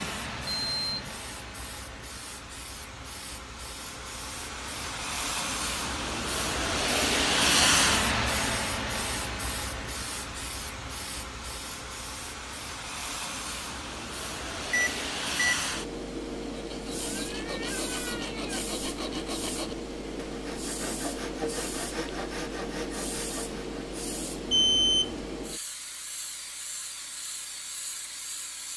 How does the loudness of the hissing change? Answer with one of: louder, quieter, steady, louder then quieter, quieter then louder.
louder then quieter.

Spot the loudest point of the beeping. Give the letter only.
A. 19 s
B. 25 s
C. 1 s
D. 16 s
B.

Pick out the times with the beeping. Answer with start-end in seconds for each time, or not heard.
0.0-1.1, 14.7-15.7, 24.5-25.2.